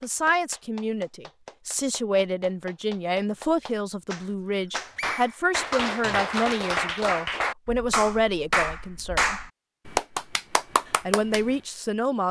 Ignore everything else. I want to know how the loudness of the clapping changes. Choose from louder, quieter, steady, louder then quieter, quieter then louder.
louder.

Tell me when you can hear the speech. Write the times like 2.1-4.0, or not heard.
0.0-9.4, 11.1-12.2.